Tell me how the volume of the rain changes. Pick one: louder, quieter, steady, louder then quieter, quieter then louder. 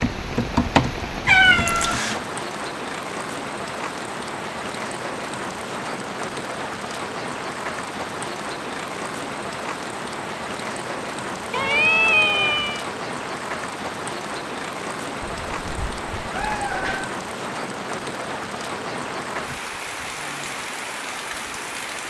steady.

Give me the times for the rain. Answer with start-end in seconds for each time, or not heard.
0.0-22.0.